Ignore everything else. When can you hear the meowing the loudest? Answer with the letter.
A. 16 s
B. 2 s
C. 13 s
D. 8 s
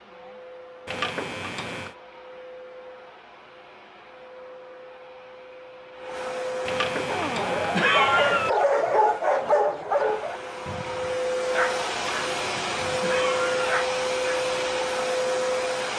D.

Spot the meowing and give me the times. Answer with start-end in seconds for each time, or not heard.
0.8-1.9, 6.7-8.5, 11.9-13.8.